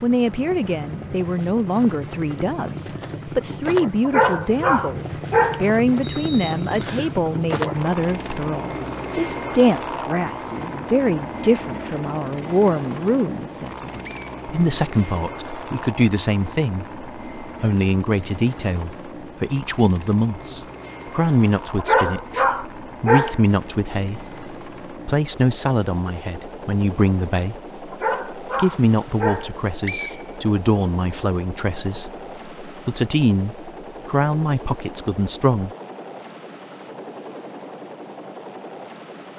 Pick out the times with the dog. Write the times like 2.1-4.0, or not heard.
4.0-5.7, 21.8-23.4, 27.9-29.5.